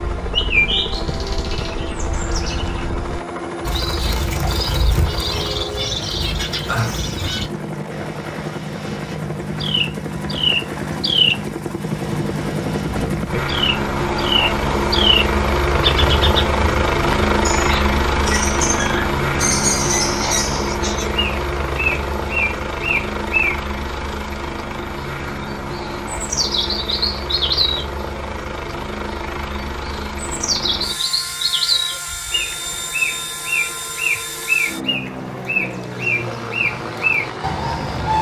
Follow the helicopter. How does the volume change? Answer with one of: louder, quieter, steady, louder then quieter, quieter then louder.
louder then quieter.